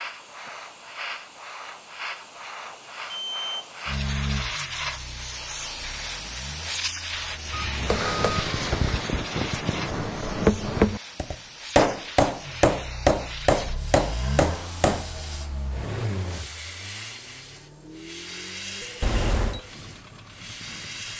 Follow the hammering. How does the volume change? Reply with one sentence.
The loudness of the hammering goes up.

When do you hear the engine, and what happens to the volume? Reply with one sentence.
You can hear the engine from 3.9 to 9.2 s, getting quieter then louder; and from 12.4 to 21.1 s, getting quieter.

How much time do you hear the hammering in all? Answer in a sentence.
The hammering can be heard for 7 seconds in total.